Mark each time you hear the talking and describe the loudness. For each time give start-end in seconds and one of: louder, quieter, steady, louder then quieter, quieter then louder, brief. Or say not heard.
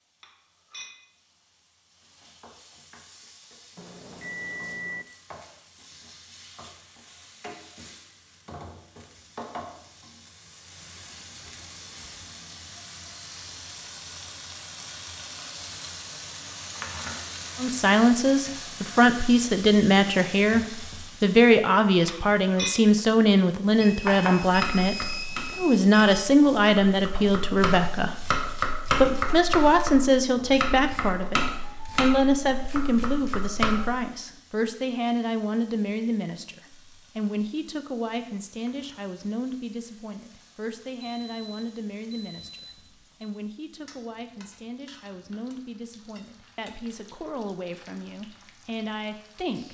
17.6-28.1 steady
28.9-49.6 quieter.